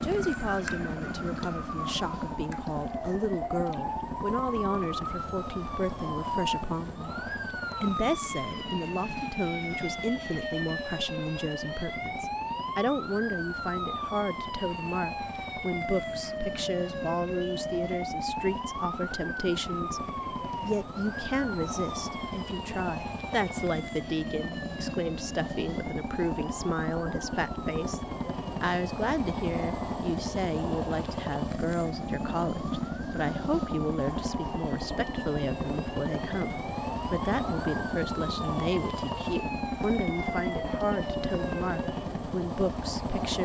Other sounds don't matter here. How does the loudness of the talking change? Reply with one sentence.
The volume of the talking stays about the same.